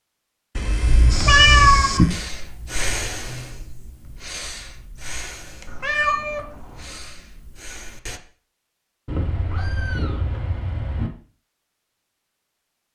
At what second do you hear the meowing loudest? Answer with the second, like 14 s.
2 s.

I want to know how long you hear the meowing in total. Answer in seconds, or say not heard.
5 s.